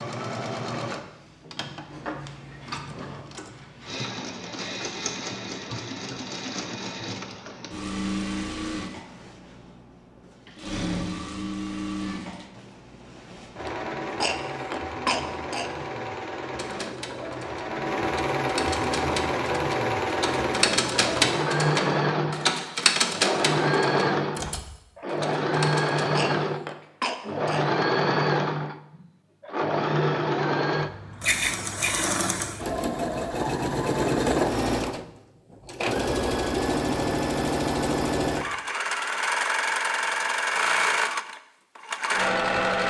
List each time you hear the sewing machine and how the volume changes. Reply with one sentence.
The sewing machine can be heard from 0.0 to 42.8 s, getting louder.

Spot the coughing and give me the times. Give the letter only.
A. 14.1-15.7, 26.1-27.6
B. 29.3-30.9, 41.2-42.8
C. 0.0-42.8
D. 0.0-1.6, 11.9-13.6
A.